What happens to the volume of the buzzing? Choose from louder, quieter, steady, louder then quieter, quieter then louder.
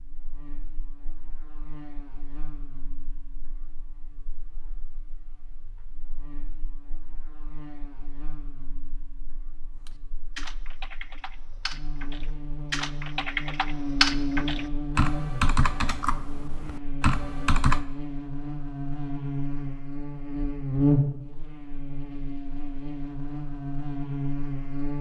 louder.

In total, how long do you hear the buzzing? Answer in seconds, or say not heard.
25 s.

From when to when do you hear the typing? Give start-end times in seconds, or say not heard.
9.7-17.9.